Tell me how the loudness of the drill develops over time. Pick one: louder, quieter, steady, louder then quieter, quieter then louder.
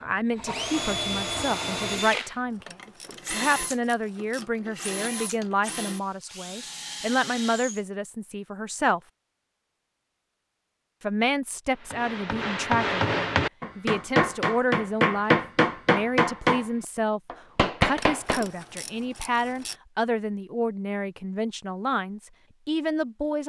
quieter.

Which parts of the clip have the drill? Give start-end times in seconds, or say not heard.
0.0-7.8.